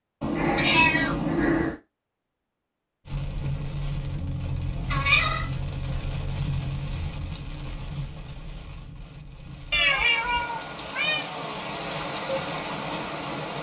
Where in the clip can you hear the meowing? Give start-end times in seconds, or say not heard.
0.2-1.8, 4.8-5.5, 9.7-11.2.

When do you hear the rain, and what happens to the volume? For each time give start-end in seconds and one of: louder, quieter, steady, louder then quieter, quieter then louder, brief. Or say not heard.
3.0-13.5 quieter then louder.